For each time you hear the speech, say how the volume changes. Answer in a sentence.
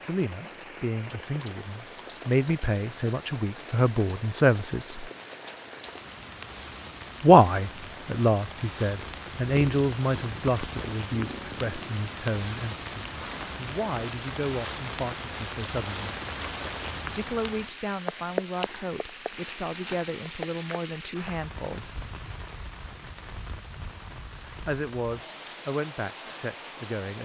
The speech can be heard from 0.0 to 5.1 s, getting louder; from 7.2 to 16.1 s, getting quieter; from 17.1 to 22.1 s, at a steady volume; and briefly from 24.4 to 27.2 s.